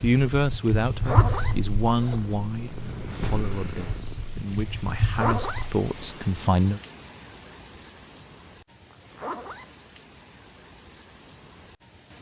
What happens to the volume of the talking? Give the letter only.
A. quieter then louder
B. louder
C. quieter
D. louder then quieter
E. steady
A.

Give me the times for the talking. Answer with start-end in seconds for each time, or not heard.
0.0-6.8.